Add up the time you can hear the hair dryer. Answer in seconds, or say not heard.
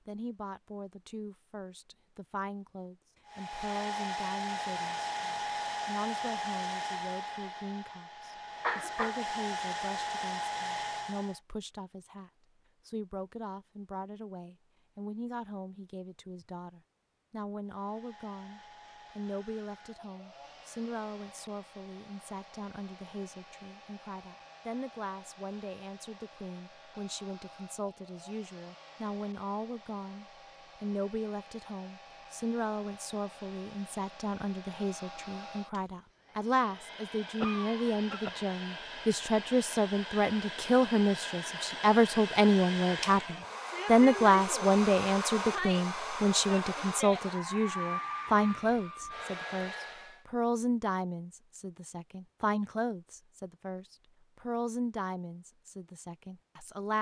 41 s.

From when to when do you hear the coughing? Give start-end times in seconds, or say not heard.
8.6-9.2, 37.4-38.4.